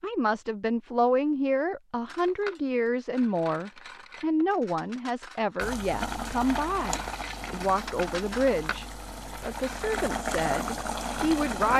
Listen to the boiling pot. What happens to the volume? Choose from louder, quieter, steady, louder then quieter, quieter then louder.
quieter then louder.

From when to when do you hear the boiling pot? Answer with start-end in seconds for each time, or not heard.
5.6-11.7.